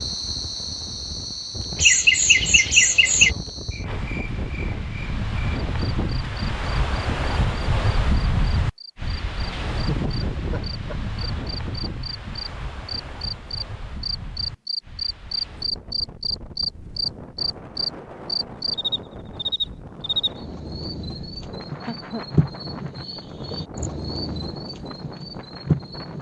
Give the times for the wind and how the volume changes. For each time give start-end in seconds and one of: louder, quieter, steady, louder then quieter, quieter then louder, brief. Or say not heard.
0.0-26.1 louder then quieter.